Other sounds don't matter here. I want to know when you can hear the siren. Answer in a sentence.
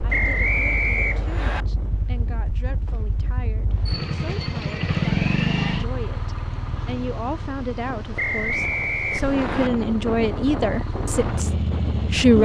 The siren can't be heard in this clip.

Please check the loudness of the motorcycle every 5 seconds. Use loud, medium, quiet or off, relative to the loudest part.
medium, loud, loud.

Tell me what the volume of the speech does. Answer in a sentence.
The loudness of the speech goes up.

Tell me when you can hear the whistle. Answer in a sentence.
You can hear the whistle from 0.1 to 1.6 s and from 8.2 to 9.7 s.